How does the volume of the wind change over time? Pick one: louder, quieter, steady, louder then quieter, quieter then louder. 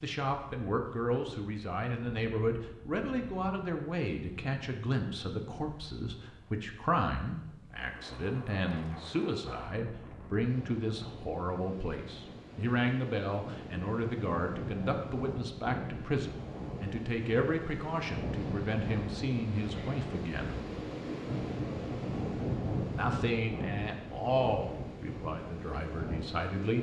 louder.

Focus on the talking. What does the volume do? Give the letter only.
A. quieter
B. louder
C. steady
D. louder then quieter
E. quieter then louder
C.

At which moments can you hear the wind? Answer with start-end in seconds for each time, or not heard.
0.2-26.7.